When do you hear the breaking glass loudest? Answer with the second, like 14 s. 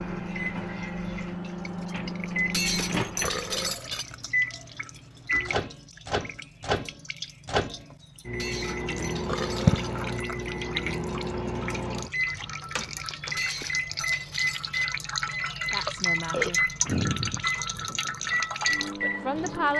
3 s.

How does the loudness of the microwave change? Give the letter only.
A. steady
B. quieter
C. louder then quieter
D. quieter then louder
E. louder
A.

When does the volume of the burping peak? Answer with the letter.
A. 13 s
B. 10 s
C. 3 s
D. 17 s
D.